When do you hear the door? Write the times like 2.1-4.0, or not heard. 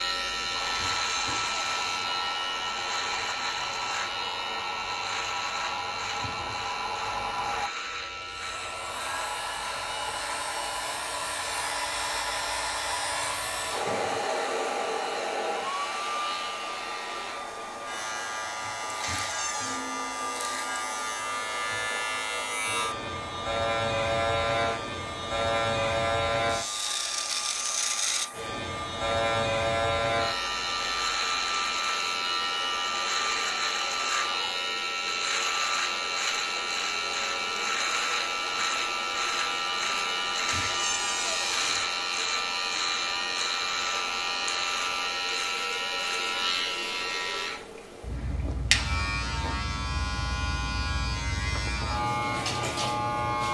0.7-2.1, 19.0-19.9, 40.5-41.9.